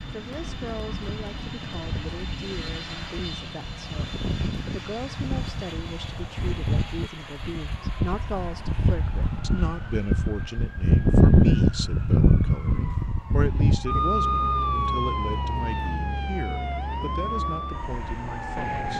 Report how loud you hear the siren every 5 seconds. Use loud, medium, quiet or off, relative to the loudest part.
quiet, medium, loud, medium.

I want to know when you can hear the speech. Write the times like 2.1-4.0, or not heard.
0.1-18.9.